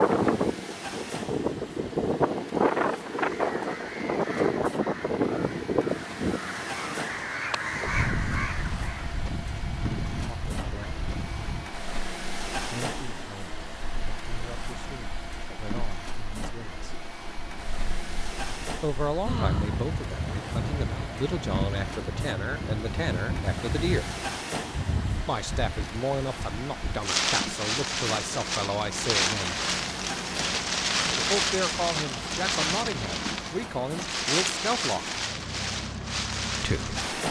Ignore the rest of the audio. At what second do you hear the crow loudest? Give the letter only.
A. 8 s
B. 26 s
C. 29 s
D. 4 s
A.